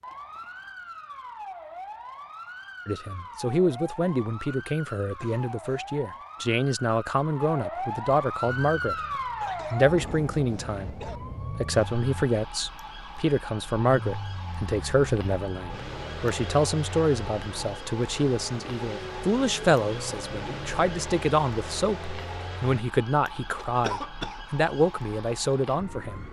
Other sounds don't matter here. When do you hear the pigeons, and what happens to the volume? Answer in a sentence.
You can't hear the pigeons here.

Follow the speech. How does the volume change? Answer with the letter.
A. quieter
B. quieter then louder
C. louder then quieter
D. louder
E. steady
E.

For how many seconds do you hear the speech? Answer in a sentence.
The speech can be heard for 23 seconds in total.